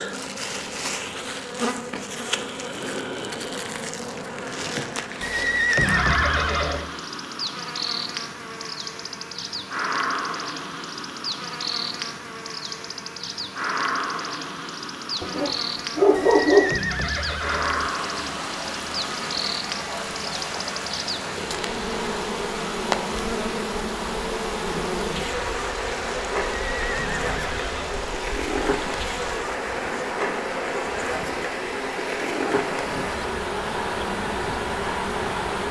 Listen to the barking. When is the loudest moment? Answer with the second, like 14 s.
16 s.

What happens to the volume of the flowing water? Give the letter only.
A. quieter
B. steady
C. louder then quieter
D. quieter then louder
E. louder
B.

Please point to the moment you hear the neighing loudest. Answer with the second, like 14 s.
6 s.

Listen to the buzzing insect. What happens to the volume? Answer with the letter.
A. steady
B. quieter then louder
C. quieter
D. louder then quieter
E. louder
A.